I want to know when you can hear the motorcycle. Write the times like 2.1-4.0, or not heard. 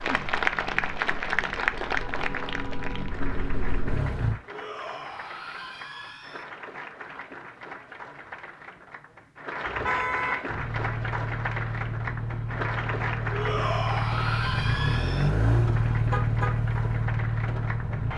0.0-4.4, 10.4-18.1.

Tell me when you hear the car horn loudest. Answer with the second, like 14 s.
10 s.